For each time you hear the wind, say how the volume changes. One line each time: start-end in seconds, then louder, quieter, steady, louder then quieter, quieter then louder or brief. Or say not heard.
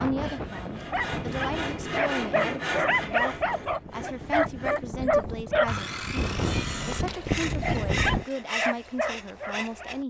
0.0-8.2 quieter then louder.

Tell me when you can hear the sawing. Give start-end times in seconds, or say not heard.
0.1-10.0.